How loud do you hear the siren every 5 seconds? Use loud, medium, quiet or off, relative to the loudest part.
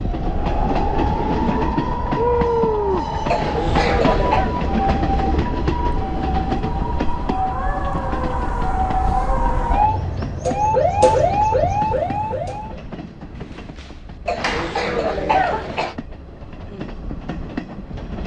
medium, medium, loud, off.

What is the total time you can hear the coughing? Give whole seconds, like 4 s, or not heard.
3 s.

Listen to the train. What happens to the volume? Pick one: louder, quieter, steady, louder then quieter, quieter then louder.
quieter.